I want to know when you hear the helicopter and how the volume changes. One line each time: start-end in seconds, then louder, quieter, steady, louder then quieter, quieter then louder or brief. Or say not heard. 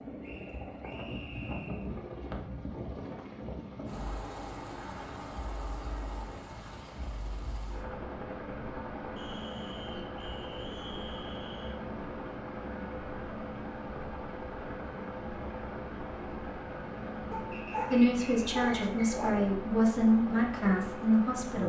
0.0-21.6 steady.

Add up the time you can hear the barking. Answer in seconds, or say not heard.
2 s.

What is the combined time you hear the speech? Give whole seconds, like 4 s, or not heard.
4 s.